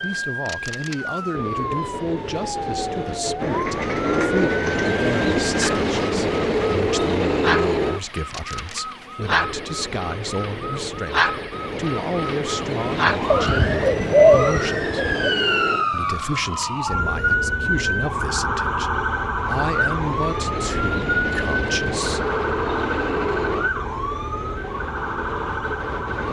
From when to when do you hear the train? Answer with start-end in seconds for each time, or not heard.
0.0-26.2.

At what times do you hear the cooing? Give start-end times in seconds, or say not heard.
3.4-5.2, 13.3-15.3.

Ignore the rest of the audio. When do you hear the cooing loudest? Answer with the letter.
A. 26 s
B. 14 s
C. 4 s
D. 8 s
B.